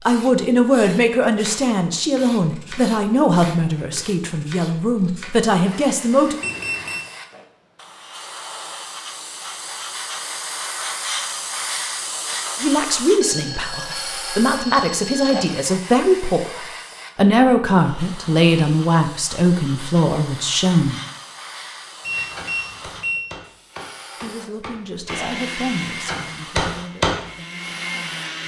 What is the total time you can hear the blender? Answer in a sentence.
The blender can be heard for 3 seconds in total.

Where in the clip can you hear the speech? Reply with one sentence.
The speech can be heard from 0.1 to 6.4 s, from 12.6 to 21.0 s and from 24.1 to 28.1 s.